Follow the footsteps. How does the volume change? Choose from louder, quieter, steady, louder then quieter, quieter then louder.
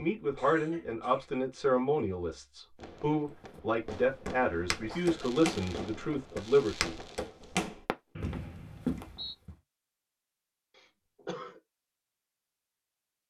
louder.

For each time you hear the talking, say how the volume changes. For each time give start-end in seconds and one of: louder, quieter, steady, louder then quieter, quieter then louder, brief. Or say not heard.
0.0-7.0 steady.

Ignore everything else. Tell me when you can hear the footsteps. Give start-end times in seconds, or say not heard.
3.5-9.6.